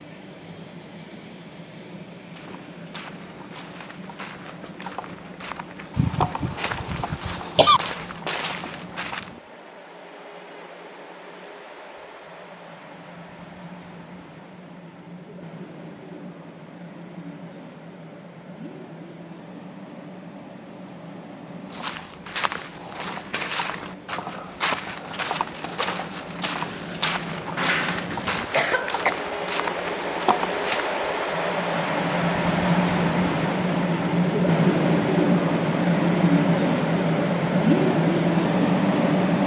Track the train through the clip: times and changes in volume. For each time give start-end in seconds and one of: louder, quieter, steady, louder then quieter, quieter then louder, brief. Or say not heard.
0.0-39.4 louder.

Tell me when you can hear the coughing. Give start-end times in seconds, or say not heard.
6.0-7.8, 27.6-29.1.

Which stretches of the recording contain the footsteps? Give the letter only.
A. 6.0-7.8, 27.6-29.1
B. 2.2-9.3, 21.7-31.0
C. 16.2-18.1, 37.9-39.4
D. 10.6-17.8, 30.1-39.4
B.